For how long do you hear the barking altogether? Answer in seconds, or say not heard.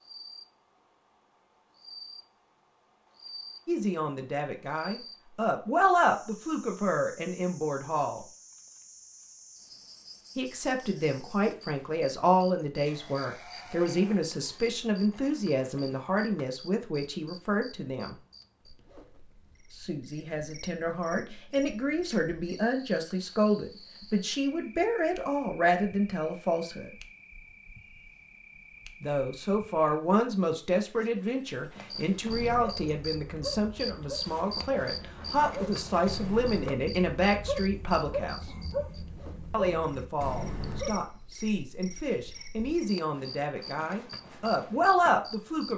9 s.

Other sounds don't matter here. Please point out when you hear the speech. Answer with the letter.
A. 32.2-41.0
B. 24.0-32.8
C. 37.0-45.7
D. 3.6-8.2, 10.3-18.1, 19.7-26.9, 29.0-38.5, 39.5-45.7
D.